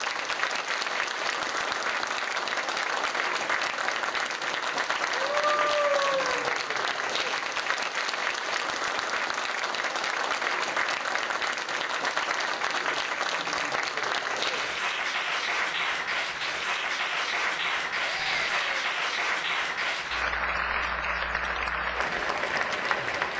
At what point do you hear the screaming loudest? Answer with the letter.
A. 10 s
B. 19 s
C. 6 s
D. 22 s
C.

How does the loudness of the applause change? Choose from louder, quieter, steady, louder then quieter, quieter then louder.
steady.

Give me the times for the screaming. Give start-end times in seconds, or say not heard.
5.1-6.5, 18.1-18.9.